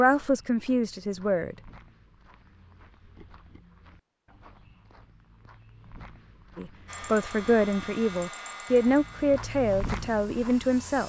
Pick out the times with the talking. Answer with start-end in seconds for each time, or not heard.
0.0-1.6, 6.5-11.0.